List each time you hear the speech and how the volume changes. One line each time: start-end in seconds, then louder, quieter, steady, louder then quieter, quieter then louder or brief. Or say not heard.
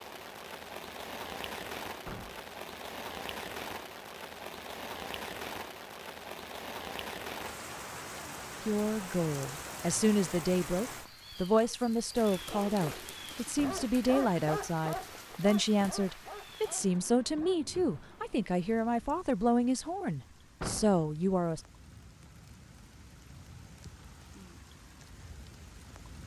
8.7-21.6 steady.